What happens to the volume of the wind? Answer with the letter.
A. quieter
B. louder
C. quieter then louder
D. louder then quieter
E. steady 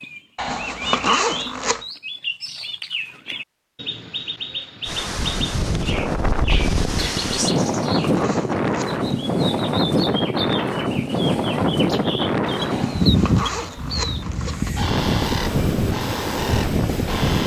E.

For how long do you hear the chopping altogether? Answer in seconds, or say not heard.
not heard.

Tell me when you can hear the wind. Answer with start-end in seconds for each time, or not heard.
4.8-17.4.